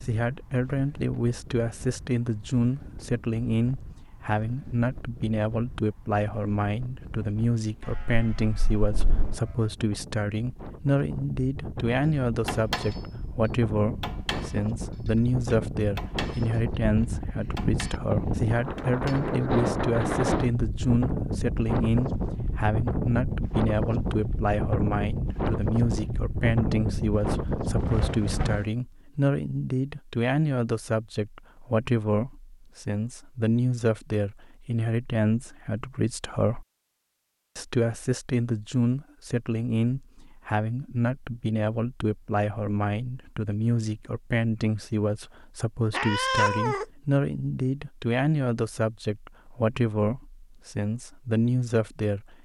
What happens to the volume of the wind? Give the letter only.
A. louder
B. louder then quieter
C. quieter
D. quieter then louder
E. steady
A.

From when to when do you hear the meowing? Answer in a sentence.
You can hear the meowing from 45.9 to 46.9 s.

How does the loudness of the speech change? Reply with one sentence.
The volume of the speech stays about the same.